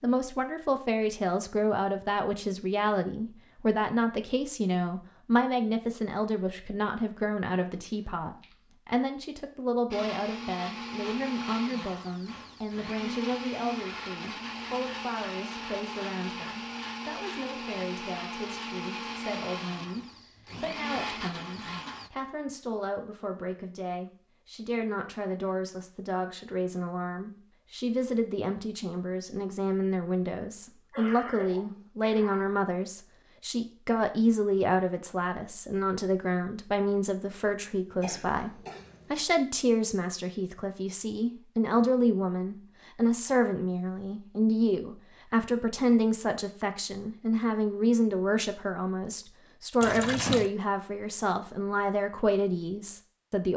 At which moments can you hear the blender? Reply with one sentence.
You can hear the blender from 9.9 to 22.1 s.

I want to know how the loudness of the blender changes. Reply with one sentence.
The loudness of the blender stays about the same.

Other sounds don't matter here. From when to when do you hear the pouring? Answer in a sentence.
The pouring can be heard from 49.8 to 50.5 s.